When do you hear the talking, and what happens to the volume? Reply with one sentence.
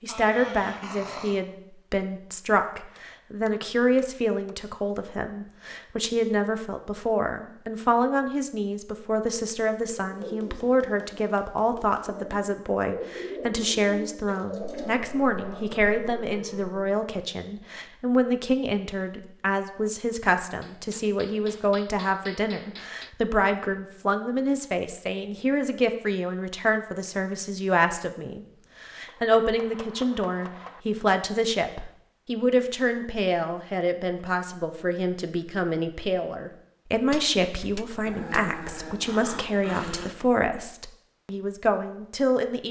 You can hear the talking from 0.0 to 42.6 s, at a steady volume.